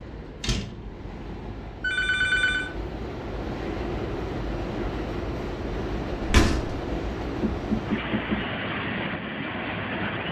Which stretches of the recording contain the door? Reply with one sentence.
The door can be heard from 0.4 to 1.0 s and from 6.2 to 6.8 s.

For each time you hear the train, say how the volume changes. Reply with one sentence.
The train can be heard from 0.0 to 10.2 s, getting louder.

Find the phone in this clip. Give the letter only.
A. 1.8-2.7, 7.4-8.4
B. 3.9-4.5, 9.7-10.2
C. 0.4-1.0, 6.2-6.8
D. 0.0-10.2
A.